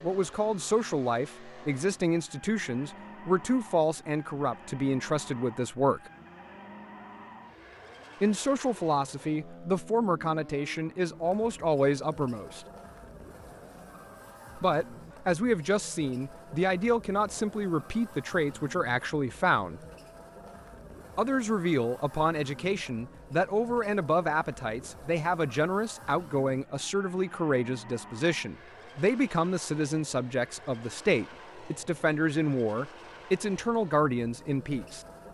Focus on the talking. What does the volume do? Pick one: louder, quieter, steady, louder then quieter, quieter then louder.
steady.